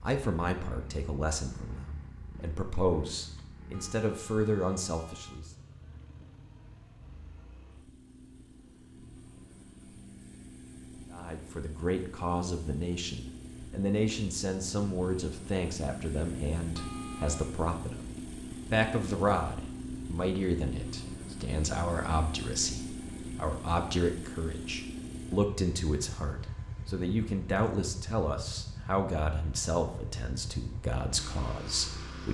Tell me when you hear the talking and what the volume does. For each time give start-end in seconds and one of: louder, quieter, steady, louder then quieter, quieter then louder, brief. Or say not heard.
0.0-5.5 quieter then louder
11.1-32.2 steady.